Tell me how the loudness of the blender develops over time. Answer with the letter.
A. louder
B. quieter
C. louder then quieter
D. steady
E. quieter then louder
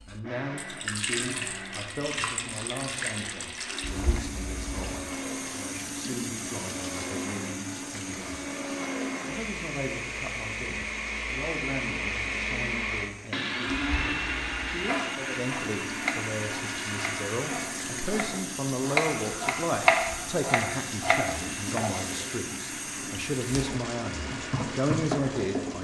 C.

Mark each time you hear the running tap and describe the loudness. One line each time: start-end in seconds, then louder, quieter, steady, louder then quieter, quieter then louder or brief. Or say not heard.
0.0-25.7 quieter then louder.